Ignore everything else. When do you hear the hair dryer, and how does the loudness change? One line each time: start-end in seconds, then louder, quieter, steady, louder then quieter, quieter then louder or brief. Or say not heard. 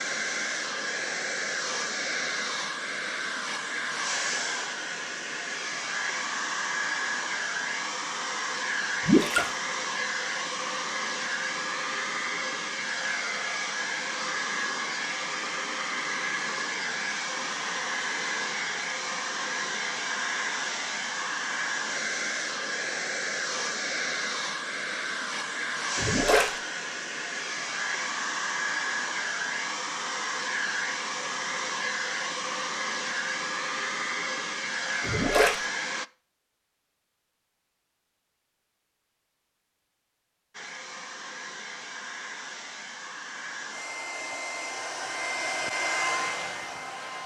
0.0-36.0 steady
40.5-47.2 louder.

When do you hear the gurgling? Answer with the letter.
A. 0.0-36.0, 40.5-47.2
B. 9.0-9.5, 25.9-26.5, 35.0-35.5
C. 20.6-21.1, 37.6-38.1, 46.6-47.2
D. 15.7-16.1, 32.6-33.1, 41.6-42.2
B.